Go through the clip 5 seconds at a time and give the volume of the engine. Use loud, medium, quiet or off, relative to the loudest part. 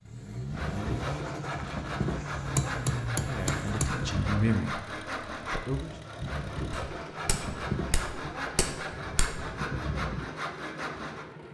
loud, medium, medium.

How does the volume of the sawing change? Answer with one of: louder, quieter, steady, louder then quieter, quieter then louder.
steady.